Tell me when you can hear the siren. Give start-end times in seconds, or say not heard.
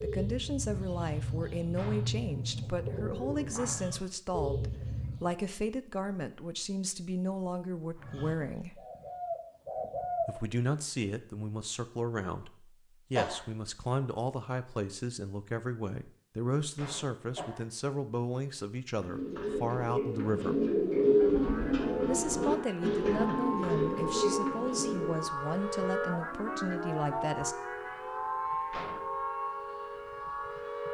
21.1-30.8.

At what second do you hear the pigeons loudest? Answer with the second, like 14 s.
21 s.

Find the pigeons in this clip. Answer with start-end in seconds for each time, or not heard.
0.0-5.3, 8.0-10.3, 18.9-25.3.